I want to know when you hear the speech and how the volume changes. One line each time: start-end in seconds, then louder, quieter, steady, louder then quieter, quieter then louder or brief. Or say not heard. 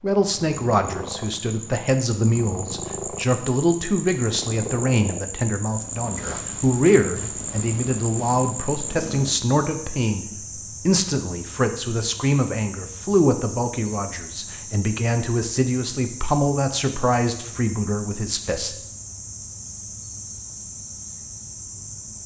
0.0-18.8 steady.